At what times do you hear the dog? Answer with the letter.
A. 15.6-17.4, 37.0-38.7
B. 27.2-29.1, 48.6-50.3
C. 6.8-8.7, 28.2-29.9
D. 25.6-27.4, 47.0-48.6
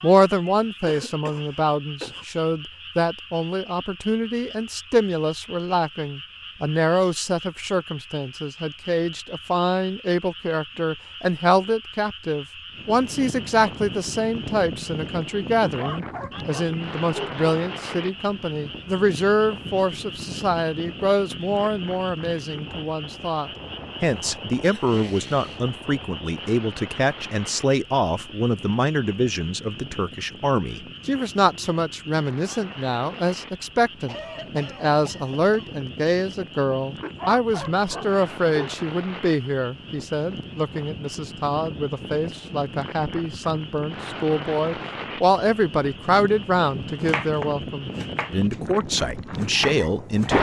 A.